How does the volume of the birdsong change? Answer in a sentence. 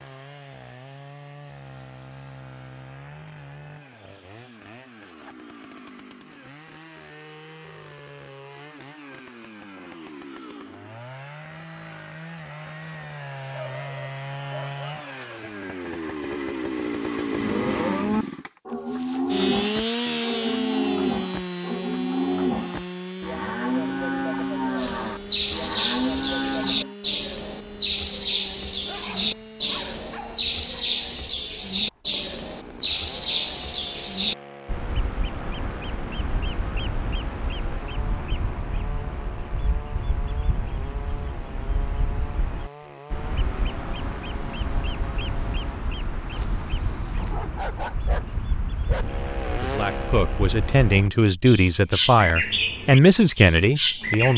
The loudness of the birdsong goes down, then up.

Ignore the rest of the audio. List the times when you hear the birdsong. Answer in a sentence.
The birdsong can be heard from 24.8 to 54.3 s.